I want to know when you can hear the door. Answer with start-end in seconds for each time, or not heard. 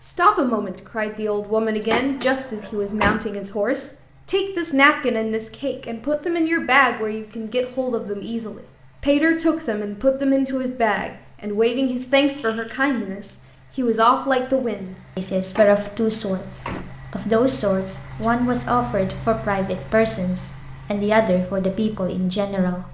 1.9-3.2, 15.6-16.9.